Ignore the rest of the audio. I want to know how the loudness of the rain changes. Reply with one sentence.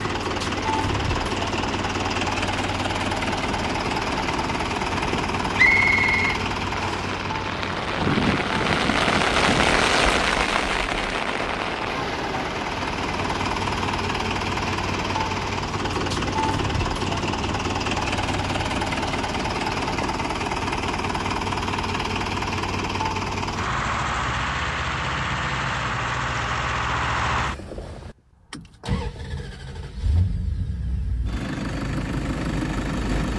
The volume of the rain goes up, then down.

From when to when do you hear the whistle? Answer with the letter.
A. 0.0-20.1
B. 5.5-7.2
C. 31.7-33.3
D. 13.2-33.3
B.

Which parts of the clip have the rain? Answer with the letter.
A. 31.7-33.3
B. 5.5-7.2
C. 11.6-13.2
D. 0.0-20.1
D.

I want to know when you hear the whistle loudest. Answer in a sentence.
The volume of the whistle peaks at 6 seconds.